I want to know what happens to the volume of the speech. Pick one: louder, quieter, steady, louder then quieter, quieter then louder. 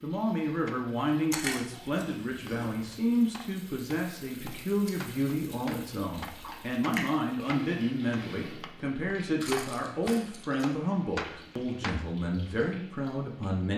steady.